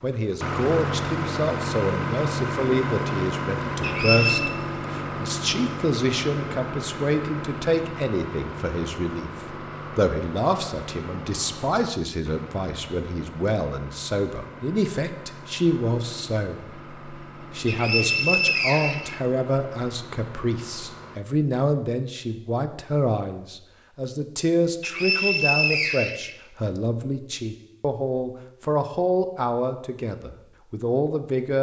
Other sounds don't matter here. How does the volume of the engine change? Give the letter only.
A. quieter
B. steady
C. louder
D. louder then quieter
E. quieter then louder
A.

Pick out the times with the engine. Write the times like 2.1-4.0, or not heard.
0.0-21.2.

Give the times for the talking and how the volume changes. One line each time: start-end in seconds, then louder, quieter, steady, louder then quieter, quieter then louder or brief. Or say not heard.
0.0-31.5 steady.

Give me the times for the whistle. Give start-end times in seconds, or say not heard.
3.8-4.5, 17.6-19.2, 24.8-26.4.